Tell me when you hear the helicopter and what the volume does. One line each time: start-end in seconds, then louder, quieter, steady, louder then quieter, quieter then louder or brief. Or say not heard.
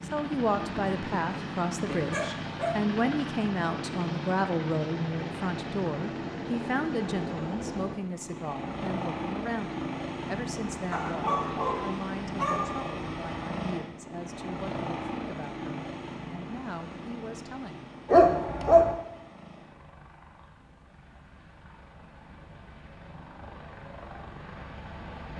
0.0-25.3 quieter.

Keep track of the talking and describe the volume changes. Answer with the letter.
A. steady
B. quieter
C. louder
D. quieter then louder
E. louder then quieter
B.